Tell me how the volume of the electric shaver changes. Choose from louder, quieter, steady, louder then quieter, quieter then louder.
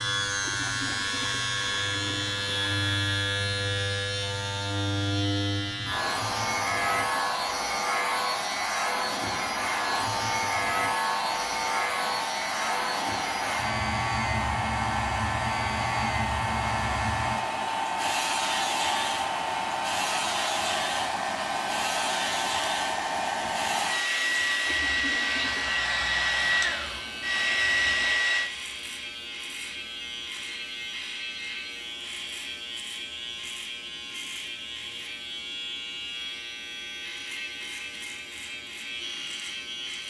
quieter.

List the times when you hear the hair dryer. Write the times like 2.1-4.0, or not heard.
5.8-28.5.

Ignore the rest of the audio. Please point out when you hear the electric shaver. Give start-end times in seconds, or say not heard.
0.0-40.0.